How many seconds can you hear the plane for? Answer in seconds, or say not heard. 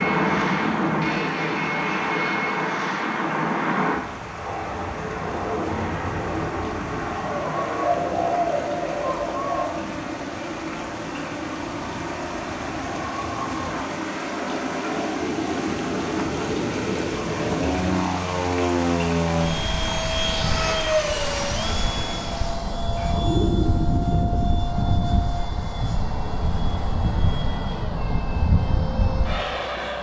30 s.